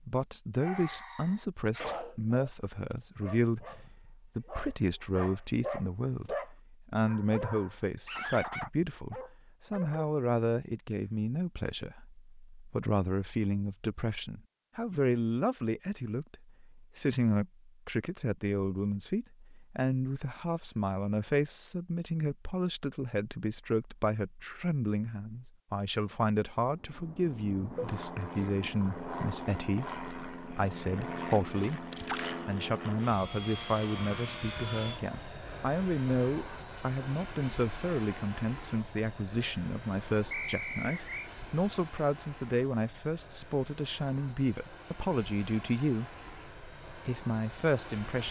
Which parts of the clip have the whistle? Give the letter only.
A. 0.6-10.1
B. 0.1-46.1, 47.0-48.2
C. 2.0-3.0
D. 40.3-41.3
D.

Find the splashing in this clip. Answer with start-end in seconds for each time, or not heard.
31.9-32.5.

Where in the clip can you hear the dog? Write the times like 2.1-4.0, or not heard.
0.6-10.1.